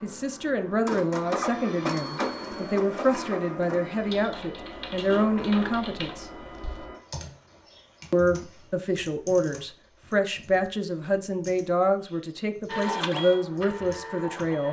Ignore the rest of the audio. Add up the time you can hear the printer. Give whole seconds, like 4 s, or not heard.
9 s.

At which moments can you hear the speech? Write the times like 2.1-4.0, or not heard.
0.0-6.2, 8.1-14.6.